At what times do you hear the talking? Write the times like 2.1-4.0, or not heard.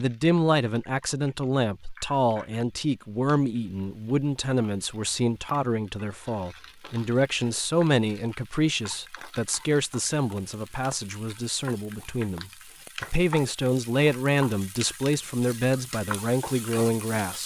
0.0-17.4.